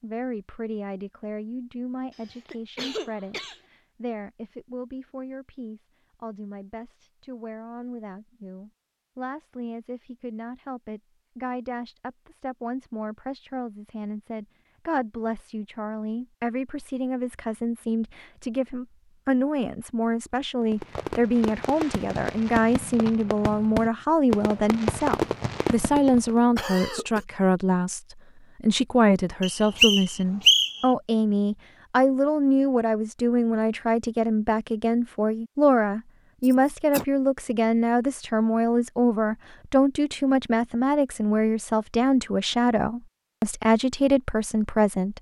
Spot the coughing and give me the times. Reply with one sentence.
You can hear the coughing from 2.1 to 3.6 s, from 26.6 to 27.2 s and from 36.4 to 37.0 s.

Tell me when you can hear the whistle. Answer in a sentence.
You can hear the whistle from 29.4 to 30.9 s.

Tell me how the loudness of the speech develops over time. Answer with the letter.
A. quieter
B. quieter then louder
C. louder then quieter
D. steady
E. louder
E.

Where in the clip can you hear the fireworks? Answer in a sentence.
You can hear the fireworks from 20.6 to 26.4 s.